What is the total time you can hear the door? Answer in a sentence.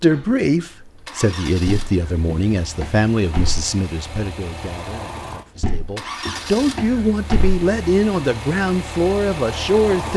You can hear the door for 4 seconds altogether.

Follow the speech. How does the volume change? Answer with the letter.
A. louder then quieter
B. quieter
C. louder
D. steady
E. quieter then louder
E.